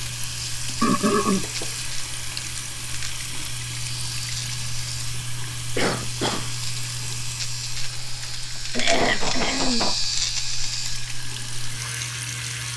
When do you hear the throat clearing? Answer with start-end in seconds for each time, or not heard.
0.8-1.4, 5.5-6.6, 8.8-9.8.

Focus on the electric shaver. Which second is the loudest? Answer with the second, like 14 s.
10 s.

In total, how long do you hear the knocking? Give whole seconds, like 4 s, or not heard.
2 s.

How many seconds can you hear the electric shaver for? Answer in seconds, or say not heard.
13 s.